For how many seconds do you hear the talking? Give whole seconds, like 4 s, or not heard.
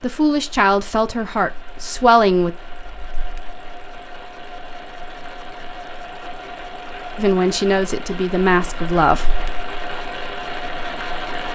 5 s.